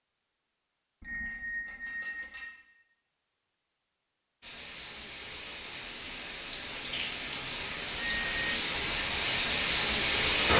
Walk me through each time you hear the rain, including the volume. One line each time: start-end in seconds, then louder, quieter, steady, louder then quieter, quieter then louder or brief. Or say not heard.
4.4-10.5 louder.